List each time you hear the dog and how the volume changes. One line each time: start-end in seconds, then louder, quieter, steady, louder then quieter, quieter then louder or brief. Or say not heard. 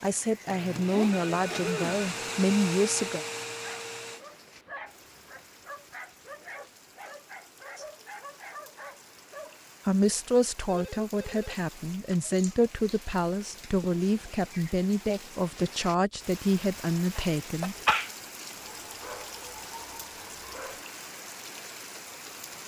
3.5-9.7 steady
18.7-20.9 brief.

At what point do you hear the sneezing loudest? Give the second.
18 s.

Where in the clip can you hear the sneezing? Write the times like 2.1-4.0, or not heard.
0.9-2.0, 12.3-12.9, 17.1-18.1.